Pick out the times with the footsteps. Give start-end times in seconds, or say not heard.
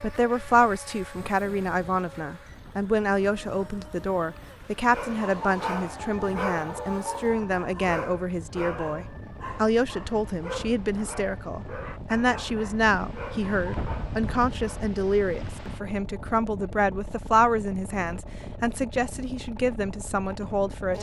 not heard.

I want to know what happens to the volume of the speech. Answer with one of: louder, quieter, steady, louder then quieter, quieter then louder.
steady.